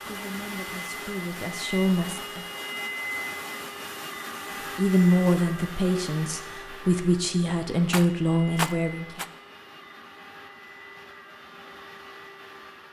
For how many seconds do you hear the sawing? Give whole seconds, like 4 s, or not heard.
not heard.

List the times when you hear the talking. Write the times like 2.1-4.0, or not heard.
0.0-2.5, 4.8-9.2.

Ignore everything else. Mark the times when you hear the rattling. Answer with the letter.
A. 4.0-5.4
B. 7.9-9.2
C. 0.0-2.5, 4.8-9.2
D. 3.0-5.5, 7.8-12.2
B.